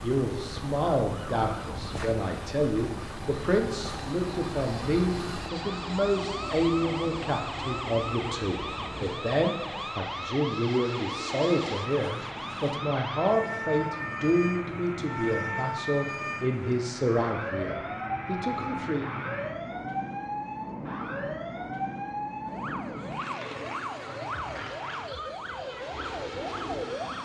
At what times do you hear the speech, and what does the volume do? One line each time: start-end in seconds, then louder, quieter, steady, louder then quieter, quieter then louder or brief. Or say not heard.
0.0-19.1 steady.